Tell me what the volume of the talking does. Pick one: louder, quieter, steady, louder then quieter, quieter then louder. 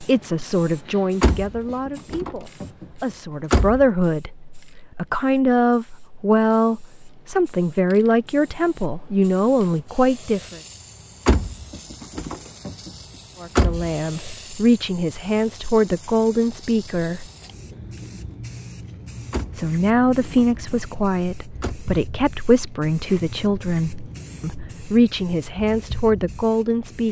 steady.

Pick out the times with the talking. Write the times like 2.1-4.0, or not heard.
0.0-10.6, 13.4-17.3, 19.6-27.0.